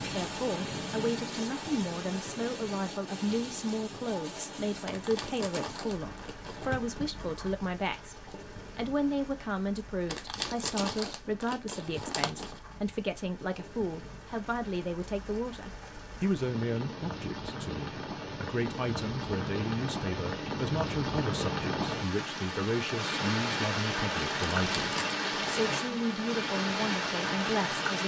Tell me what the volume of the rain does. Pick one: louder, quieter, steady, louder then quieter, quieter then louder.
quieter then louder.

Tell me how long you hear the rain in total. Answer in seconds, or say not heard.
28 s.